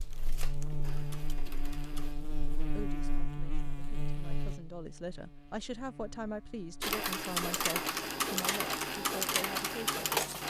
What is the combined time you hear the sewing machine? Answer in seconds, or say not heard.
6 s.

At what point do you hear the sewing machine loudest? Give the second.
10 s.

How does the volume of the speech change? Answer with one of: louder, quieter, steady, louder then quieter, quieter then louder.
louder.